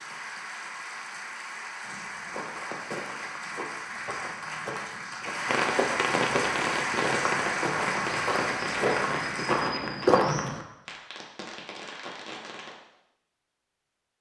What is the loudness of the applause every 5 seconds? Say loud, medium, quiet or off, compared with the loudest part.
medium, loud, off.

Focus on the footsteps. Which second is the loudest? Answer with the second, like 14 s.
10 s.